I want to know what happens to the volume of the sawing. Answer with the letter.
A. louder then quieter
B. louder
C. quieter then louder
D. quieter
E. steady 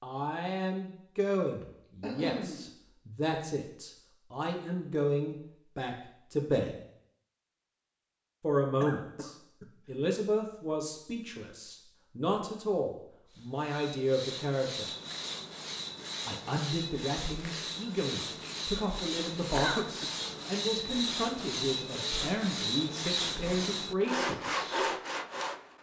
B.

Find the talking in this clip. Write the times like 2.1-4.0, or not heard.
0.0-6.8, 8.4-14.9, 16.2-24.9.